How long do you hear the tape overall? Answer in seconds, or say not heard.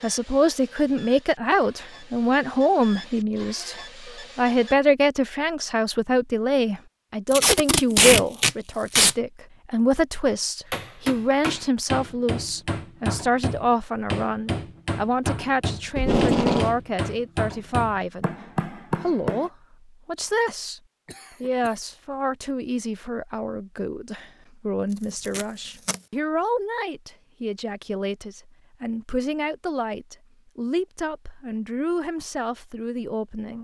3 s.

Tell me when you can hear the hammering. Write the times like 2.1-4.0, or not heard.
10.7-19.5.